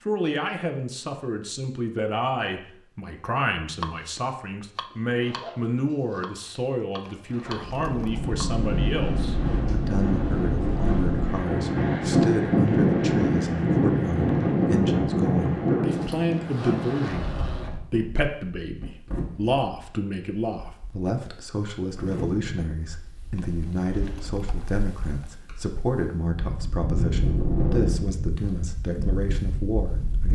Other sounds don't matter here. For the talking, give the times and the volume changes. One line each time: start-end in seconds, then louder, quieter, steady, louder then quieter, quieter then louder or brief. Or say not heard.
0.1-30.3 steady.